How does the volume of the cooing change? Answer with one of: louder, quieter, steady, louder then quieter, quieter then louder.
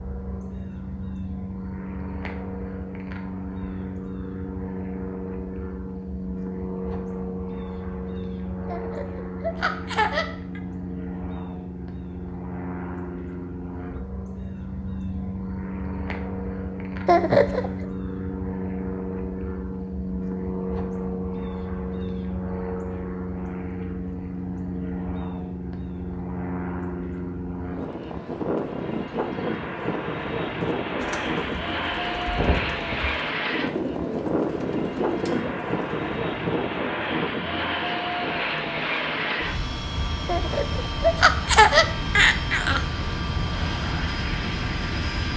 louder.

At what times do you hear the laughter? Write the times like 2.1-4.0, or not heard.
8.7-10.6, 17.1-17.9, 40.2-42.8.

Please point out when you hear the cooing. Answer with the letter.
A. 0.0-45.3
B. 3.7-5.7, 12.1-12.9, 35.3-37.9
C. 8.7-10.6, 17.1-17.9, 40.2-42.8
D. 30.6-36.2
D.